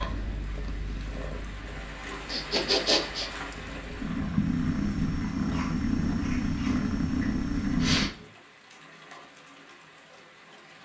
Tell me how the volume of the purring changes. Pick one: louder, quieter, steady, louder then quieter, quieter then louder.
quieter then louder.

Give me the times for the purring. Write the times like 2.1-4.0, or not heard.
0.0-8.1.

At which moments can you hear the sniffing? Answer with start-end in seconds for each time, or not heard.
2.3-3.3, 7.8-8.3.